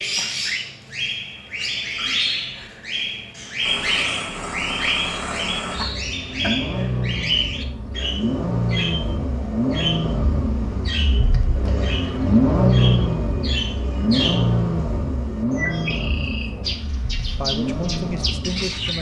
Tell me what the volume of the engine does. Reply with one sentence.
The volume of the engine goes up, then down.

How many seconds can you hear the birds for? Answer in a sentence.
The birds can be heard for 19 seconds in total.